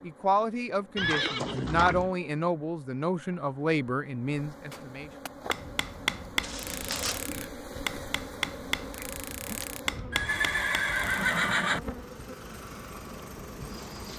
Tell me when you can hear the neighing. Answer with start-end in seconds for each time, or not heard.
0.9-2.1, 6.4-7.3, 10.1-11.8.